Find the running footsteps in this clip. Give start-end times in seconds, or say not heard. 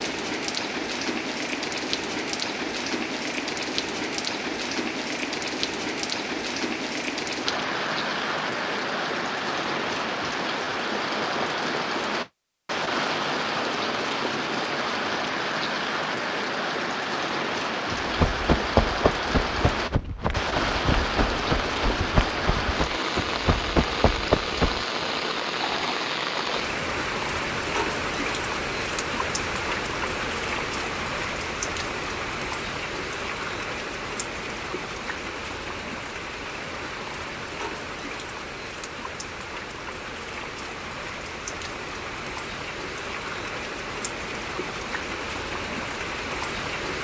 17.9-24.9.